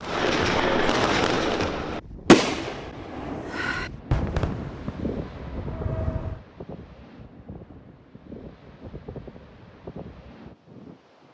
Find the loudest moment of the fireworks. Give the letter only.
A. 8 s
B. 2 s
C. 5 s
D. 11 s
B.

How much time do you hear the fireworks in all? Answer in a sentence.
You can hear the fireworks for 6 seconds altogether.